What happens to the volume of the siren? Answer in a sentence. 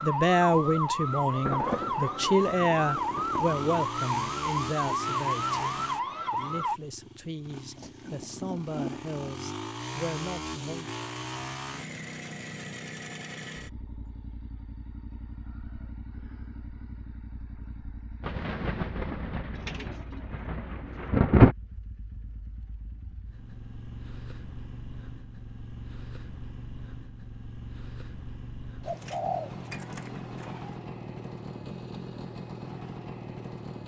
The volume of the siren stays about the same.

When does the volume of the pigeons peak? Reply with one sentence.
The volume of the pigeons peaks at 29 seconds.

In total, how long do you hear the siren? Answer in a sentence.
You can hear the siren for 7 seconds altogether.